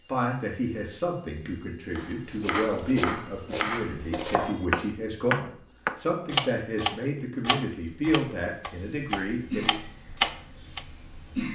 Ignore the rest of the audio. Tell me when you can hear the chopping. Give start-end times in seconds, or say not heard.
1.9-10.8.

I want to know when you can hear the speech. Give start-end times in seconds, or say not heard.
0.1-9.8.